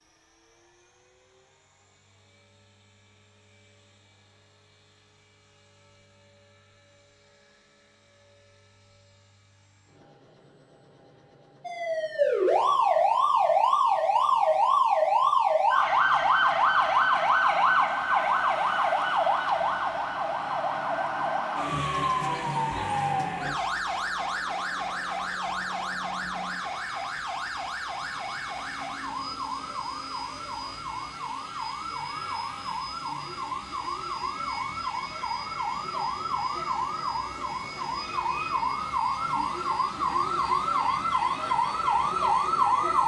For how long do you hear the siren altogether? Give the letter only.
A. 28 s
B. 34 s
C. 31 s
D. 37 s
C.